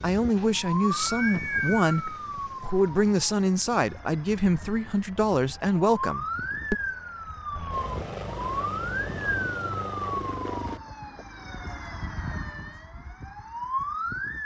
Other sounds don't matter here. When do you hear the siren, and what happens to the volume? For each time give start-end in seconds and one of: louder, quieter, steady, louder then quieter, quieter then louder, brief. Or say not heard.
0.0-14.4 quieter then louder.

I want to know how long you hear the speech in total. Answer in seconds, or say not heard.
7 s.